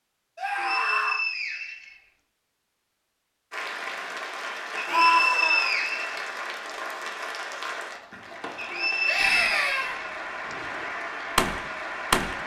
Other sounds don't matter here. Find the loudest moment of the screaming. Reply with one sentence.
The volume of the screaming peaks at 5 seconds.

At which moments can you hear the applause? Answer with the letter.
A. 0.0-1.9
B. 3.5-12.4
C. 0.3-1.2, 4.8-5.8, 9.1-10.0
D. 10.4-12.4
B.